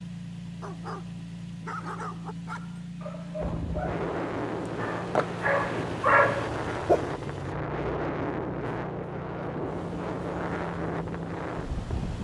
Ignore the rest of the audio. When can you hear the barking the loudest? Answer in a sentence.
The loudest moment of the barking is at 6 seconds.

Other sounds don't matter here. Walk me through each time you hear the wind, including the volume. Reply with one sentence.
The wind can be heard from 3.4 to 12.1 s, at a steady volume.